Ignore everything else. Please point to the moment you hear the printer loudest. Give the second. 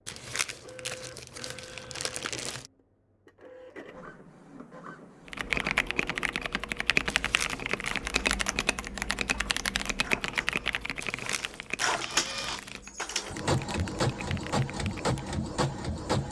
14 s.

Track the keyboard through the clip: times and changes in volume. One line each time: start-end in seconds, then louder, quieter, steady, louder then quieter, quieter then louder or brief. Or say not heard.
5.2-15.3 quieter.